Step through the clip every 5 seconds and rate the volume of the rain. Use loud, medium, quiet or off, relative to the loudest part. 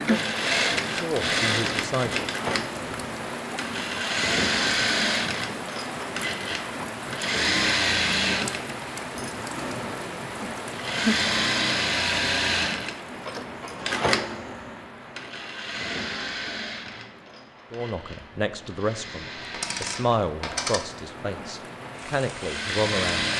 loud, loud, loud, quiet, medium.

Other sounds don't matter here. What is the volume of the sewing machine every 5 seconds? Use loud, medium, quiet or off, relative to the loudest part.
loud, loud, loud, medium, loud.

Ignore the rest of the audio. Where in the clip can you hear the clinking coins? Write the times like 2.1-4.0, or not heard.
19.5-20.9.